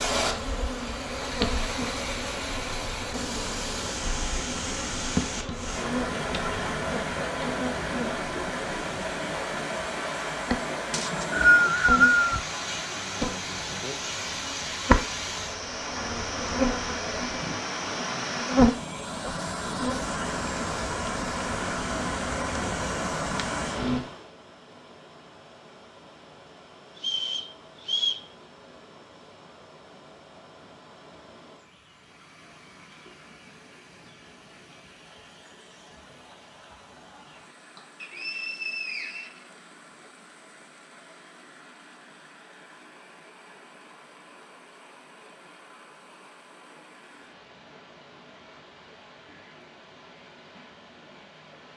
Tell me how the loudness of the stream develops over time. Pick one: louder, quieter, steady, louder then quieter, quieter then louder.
quieter.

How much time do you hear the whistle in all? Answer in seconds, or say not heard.
4 s.